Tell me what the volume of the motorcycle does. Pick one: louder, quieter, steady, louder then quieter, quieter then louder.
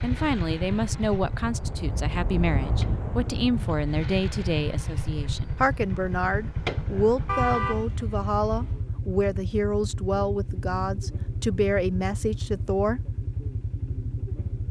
steady.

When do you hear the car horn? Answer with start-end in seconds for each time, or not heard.
7.2-8.8.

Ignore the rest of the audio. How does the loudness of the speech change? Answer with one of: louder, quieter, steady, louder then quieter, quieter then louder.
steady.